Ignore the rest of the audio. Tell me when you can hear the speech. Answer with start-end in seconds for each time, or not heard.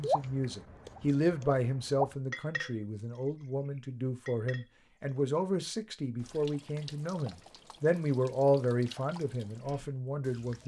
0.0-10.6.